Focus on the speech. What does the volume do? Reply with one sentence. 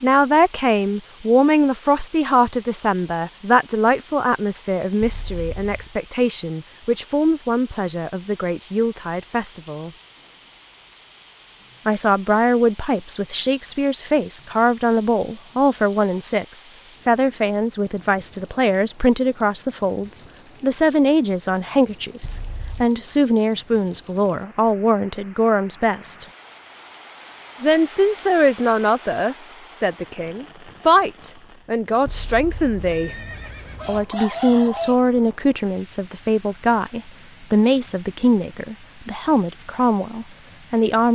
The loudness of the speech stays about the same.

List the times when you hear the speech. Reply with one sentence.
You can hear the speech from 0.0 to 9.9 s, from 11.8 to 26.2 s, from 27.6 to 33.1 s and from 33.9 to 41.1 s.